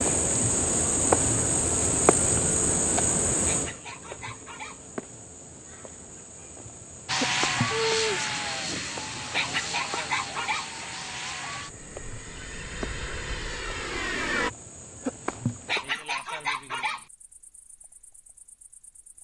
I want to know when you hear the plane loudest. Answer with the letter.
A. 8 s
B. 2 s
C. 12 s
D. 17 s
A.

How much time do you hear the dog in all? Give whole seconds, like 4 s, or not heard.
4 s.